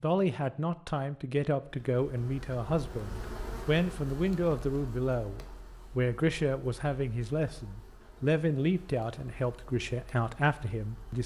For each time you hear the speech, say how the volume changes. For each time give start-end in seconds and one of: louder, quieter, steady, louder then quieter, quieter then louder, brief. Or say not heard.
0.0-11.2 steady.